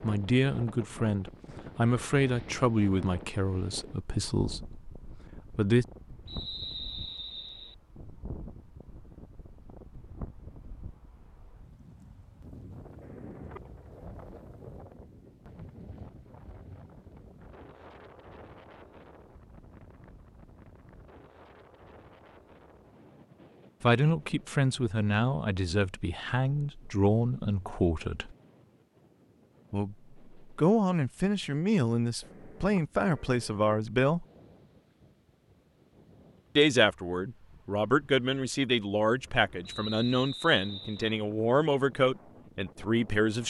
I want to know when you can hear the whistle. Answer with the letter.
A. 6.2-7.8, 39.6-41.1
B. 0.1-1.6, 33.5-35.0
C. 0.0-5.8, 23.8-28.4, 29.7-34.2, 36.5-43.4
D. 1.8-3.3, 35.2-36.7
A.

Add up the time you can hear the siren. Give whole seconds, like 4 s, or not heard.
not heard.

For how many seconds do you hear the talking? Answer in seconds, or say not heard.
22 s.